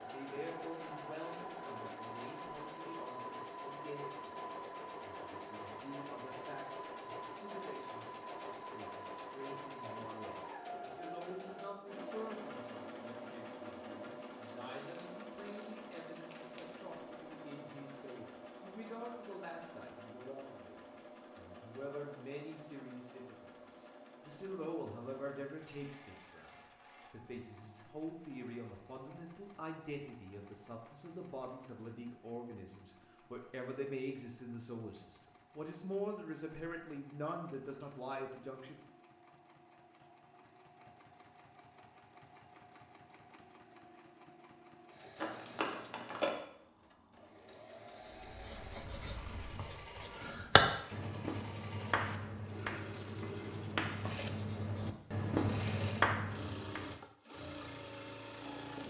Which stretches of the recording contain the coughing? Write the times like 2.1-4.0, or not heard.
not heard.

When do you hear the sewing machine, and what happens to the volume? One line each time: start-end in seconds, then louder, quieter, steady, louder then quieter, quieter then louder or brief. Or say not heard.
0.0-58.8 quieter then louder.